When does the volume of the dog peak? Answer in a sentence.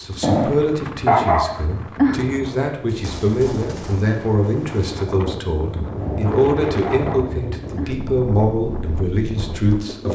The volume of the dog peaks at 1 second.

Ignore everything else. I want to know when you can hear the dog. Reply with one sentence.
You can hear the dog from 0.2 to 2.2 s and from 6.0 to 8.0 s.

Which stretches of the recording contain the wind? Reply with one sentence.
The wind can be heard from 0.0 to 10.1 s.